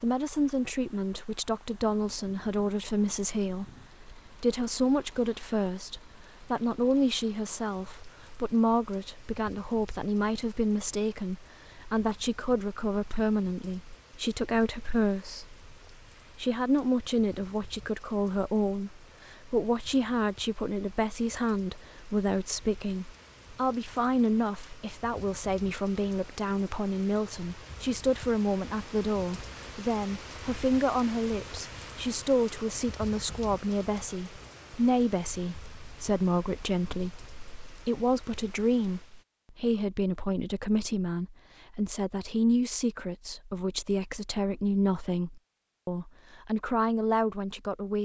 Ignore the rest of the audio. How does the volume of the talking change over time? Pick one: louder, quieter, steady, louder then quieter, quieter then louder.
steady.